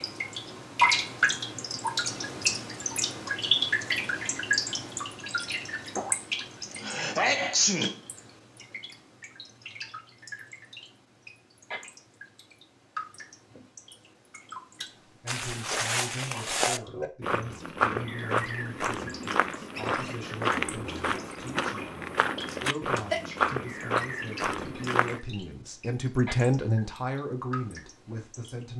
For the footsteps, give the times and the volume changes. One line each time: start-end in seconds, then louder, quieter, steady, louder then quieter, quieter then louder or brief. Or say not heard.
15.2-25.2 steady.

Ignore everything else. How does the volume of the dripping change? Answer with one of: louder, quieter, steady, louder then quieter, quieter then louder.
quieter.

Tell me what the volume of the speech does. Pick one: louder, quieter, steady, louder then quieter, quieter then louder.
louder.